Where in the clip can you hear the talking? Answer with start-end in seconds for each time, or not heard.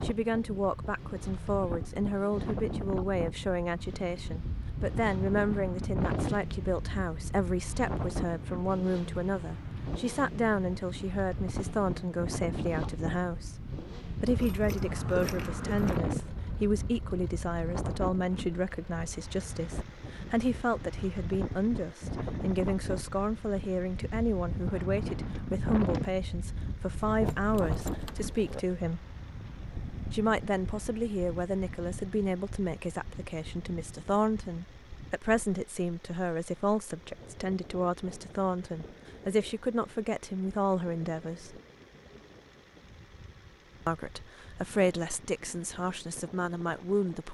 0.0-13.6, 14.2-29.1, 30.1-41.6, 43.9-47.2.